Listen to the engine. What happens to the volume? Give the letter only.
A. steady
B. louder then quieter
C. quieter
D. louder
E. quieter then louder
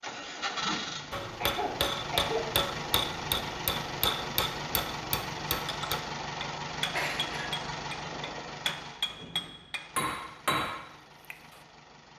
C.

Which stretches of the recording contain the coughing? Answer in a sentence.
You can hear the coughing from 1.4 to 2.5 s and from 7.0 to 8.4 s.